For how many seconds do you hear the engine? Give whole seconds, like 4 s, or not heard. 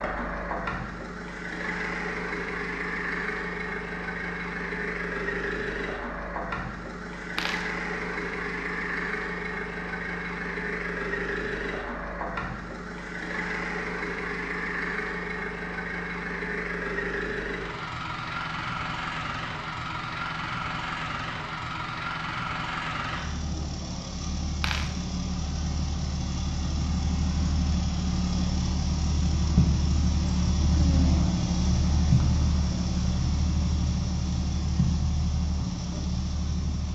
37 s.